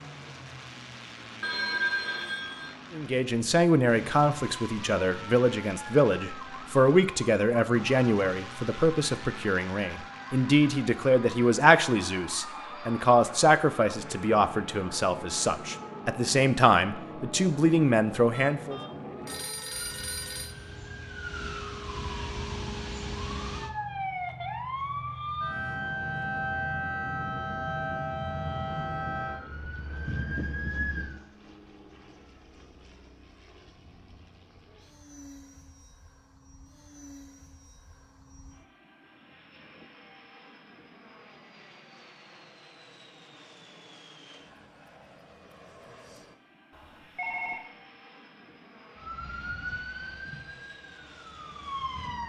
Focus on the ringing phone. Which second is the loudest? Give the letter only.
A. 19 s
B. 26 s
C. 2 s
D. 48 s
C.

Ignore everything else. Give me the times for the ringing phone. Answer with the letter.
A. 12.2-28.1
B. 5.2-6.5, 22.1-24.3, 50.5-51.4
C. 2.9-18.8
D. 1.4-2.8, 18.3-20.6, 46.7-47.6
D.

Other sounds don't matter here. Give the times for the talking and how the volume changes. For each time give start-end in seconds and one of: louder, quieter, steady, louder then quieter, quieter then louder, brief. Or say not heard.
2.9-18.8 steady.